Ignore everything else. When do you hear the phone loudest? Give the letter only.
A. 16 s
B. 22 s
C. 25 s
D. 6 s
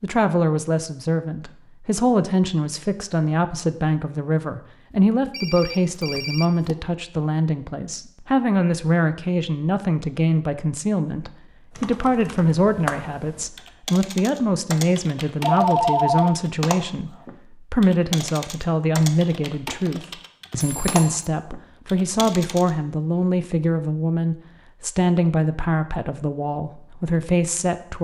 A.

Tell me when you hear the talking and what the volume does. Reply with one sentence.
The talking can be heard from 0.0 to 27.9 s, at a steady volume.